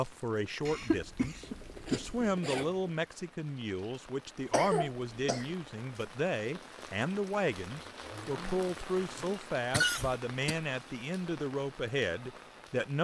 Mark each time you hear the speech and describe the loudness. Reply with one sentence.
The speech can be heard from 0.0 to 12.9 s, at a steady volume.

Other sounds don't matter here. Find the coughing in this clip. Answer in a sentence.
The coughing can be heard from 0.7 to 2.2 s, from 4.5 to 5.5 s and from 9.7 to 10.6 s.